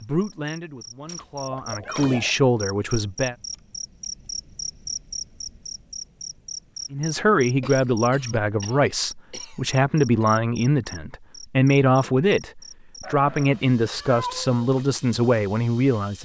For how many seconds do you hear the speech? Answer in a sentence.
The speech can be heard for 13 seconds in total.